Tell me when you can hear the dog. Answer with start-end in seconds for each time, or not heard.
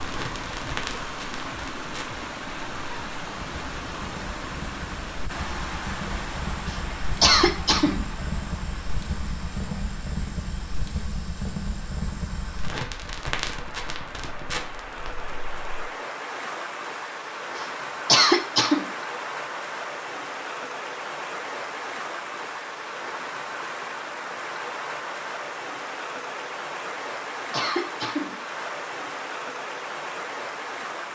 not heard.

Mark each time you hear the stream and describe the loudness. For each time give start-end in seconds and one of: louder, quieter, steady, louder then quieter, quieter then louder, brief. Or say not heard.
0.0-31.1 quieter then louder.